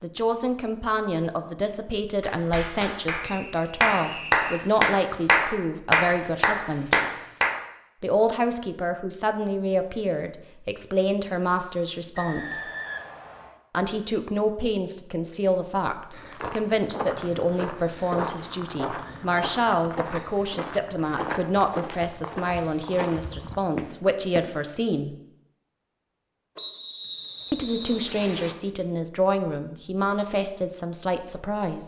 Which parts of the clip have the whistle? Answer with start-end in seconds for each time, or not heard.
3.2-4.7, 12.2-13.6, 26.6-28.6.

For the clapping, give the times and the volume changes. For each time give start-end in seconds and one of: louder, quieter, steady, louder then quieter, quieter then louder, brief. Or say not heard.
2.2-7.5 louder.